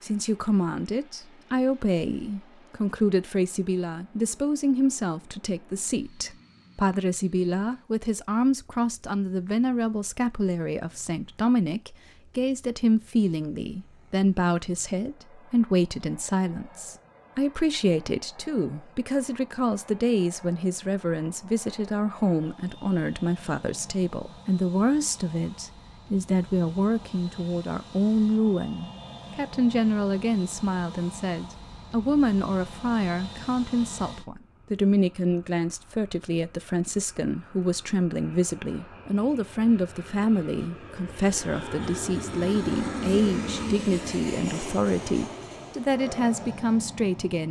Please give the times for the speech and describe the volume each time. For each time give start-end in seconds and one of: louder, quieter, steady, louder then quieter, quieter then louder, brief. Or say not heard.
0.0-47.4 steady.